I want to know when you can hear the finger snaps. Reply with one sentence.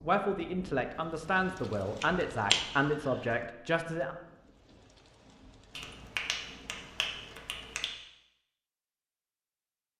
The finger snaps can be heard from 2.0 to 3.0 s and from 5.8 to 8.0 s.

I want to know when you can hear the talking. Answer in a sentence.
You can hear the talking from 0.0 to 4.2 s.